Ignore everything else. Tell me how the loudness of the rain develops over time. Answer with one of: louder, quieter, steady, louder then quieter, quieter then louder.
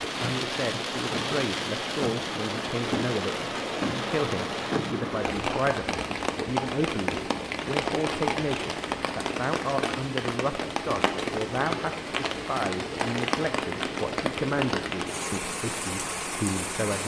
steady.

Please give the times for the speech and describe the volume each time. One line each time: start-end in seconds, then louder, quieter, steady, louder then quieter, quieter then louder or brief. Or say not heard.
0.0-17.0 steady.